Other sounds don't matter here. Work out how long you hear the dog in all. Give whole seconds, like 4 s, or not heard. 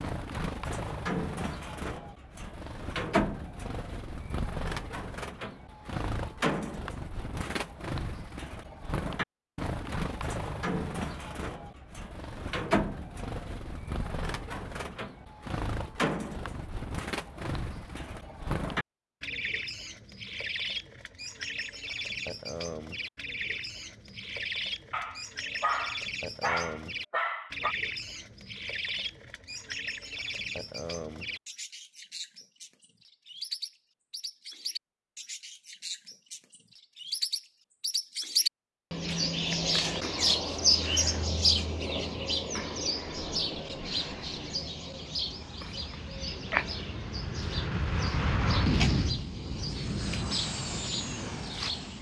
3 s.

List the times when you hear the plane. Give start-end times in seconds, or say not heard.
43.3-51.9.